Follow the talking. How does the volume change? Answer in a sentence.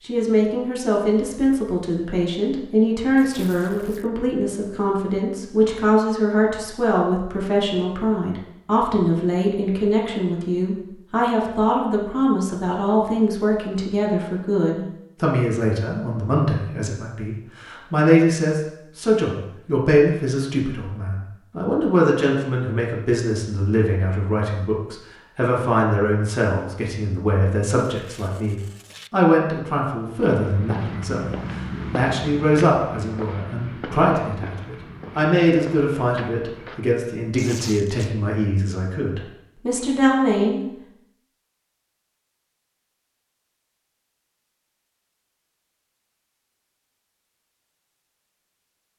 The loudness of the talking stays about the same.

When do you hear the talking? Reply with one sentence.
The talking can be heard from 0.0 to 40.6 s.